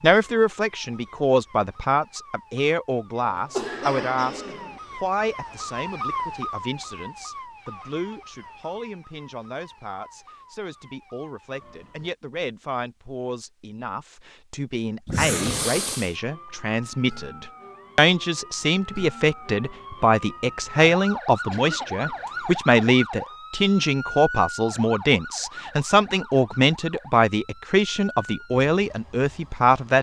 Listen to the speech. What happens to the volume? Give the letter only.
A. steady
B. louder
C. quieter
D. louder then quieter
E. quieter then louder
E.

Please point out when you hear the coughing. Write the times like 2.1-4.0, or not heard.
3.2-4.8, 15.1-16.1, 21.5-22.6.